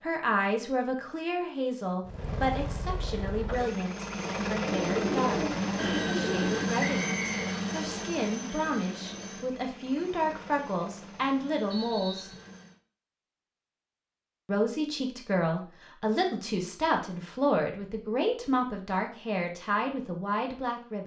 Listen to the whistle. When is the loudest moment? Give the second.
7 s.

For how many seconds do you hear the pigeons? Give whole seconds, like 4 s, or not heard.
2 s.